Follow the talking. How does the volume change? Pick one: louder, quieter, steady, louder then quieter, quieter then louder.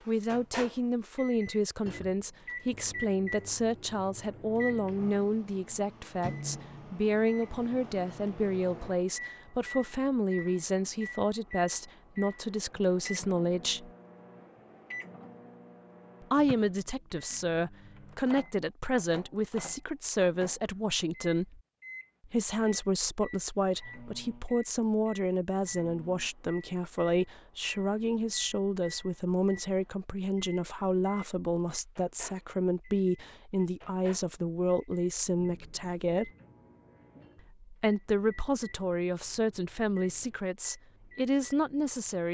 steady.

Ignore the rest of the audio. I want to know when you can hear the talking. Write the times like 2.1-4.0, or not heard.
0.1-13.9, 16.2-21.6, 22.2-36.3, 37.6-42.2.